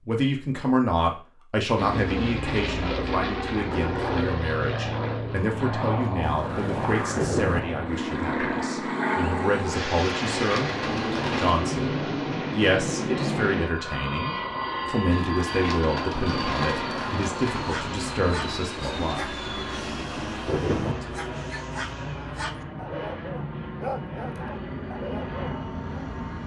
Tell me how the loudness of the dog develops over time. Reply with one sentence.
The loudness of the dog goes down, then up.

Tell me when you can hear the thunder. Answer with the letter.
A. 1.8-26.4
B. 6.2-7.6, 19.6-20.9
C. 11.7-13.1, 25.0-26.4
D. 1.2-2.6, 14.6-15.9
B.